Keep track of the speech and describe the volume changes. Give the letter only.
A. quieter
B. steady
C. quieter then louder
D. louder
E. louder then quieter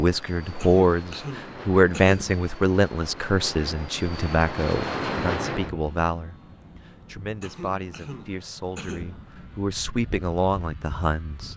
C.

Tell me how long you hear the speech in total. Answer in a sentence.
The speech can be heard for 11 seconds in total.